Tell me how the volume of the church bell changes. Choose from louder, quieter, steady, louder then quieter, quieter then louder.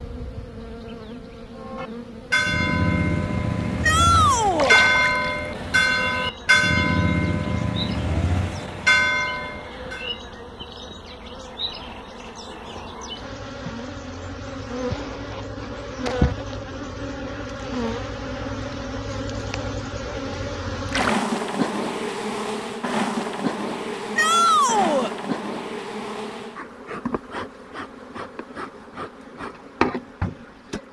steady.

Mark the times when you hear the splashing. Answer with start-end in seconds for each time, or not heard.
4.5-5.3, 20.9-21.3.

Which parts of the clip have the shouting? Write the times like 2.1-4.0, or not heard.
3.8-4.8, 24.1-25.1.